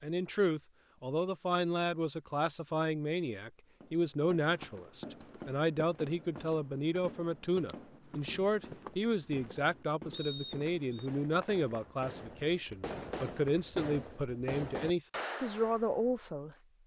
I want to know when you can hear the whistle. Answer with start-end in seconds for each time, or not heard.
10.1-11.1.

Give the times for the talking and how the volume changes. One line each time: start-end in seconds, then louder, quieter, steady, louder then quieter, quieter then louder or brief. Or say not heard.
0.0-16.6 steady.